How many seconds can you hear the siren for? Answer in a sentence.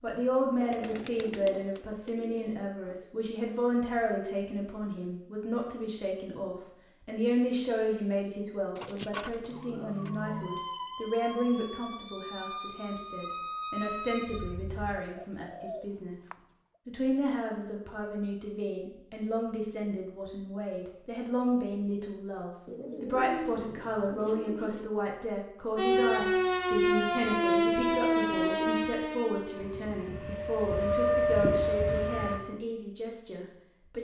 You can hear the siren for 12 seconds altogether.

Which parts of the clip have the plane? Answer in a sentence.
You can't hear the plane here.